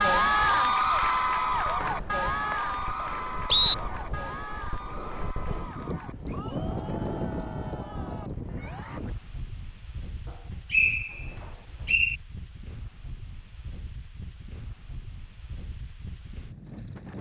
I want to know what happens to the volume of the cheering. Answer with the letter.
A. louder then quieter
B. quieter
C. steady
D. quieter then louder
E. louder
B.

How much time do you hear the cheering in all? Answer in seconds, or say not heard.
9 s.